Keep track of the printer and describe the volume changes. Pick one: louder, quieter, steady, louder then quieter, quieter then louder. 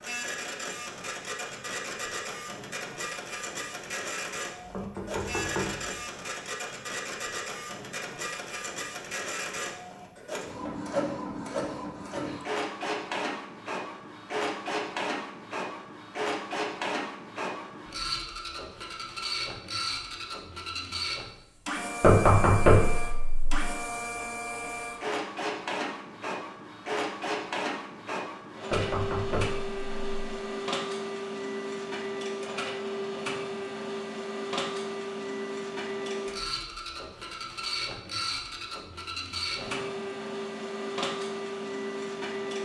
steady.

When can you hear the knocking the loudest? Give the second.
22 s.